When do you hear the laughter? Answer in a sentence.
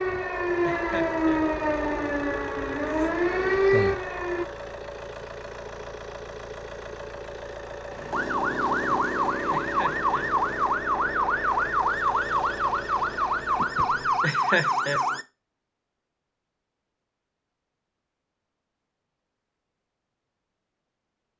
The laughter can be heard from 0.6 to 1.4 s, from 9.5 to 10.3 s and from 14.2 to 15.0 s.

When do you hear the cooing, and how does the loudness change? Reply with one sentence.
The cooing can't be heard in this clip.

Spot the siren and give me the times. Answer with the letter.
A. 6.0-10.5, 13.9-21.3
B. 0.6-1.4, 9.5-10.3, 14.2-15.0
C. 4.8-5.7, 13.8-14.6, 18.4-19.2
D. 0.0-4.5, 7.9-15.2
D.